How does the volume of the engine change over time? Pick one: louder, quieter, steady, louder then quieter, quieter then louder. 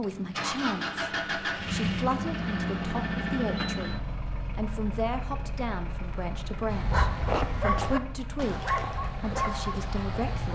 quieter.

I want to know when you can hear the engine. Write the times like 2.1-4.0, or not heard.
0.0-10.4.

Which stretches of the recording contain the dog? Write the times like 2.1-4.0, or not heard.
6.7-10.4.